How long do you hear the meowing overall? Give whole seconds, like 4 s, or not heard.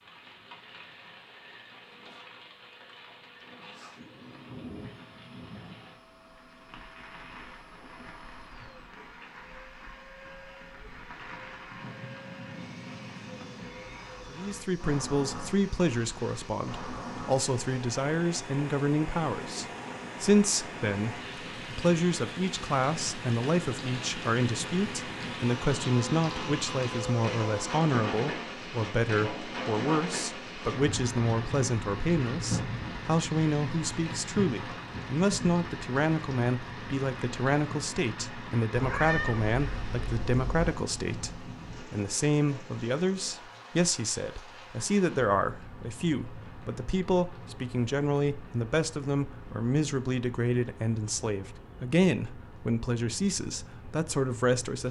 2 s.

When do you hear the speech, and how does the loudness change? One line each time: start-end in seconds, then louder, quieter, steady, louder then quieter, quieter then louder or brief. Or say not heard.
14.3-54.8 steady.